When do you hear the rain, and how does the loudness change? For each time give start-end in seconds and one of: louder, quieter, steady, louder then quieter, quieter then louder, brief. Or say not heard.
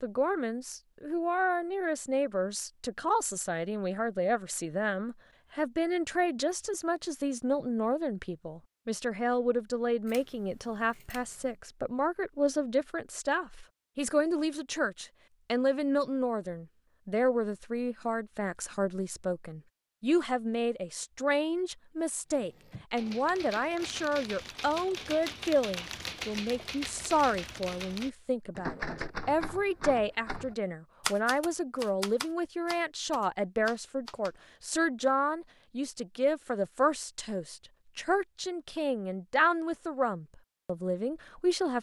not heard.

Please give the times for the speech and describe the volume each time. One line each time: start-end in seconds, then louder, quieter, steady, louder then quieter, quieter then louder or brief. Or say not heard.
0.0-41.7 steady.